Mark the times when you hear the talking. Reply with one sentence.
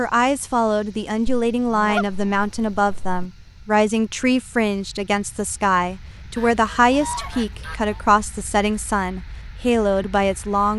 You can hear the talking from 0.0 to 10.7 s.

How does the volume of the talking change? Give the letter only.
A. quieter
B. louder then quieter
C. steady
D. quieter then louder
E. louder
C.